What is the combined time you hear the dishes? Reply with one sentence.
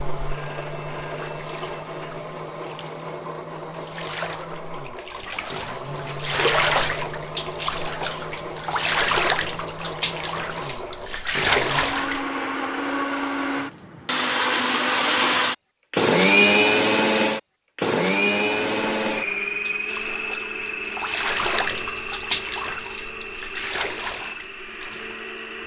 The dishes can't be heard in this clip.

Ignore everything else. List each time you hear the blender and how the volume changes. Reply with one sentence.
You can hear the blender from 0.0 to 25.6 s, getting louder then quieter.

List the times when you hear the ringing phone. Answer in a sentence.
You can hear the ringing phone from 0.2 to 2.2 s.